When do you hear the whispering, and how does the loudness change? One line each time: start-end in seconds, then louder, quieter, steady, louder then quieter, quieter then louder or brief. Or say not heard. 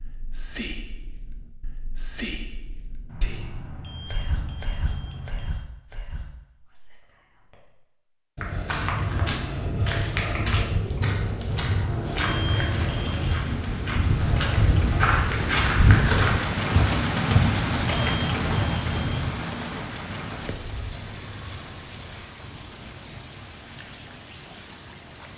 0.0-7.8 quieter.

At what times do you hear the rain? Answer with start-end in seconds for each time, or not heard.
12.0-25.3.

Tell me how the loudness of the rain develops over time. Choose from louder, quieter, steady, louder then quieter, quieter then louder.
louder then quieter.